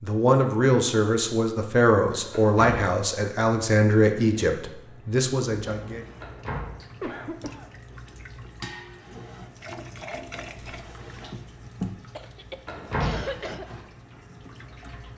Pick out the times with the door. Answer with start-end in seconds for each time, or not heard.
2.3-2.9, 6.2-6.8, 12.7-13.2.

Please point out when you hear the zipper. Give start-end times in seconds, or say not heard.
not heard.